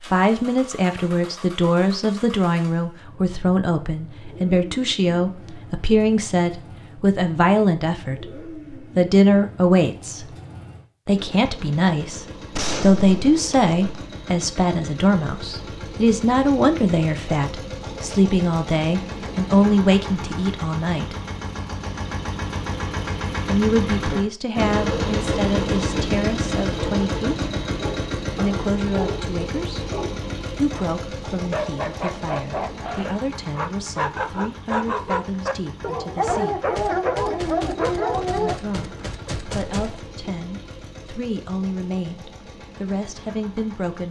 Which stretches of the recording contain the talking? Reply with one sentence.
The talking can be heard from 0.1 to 10.3 s, from 11.1 to 21.1 s, from 23.4 to 27.4 s, from 28.4 to 29.9 s, from 30.6 to 36.6 s and from 38.4 to 44.0 s.